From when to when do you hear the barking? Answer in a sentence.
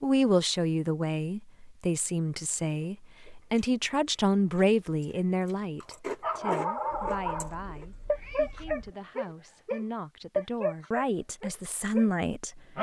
You can hear the barking from 6.2 to 12.7 s.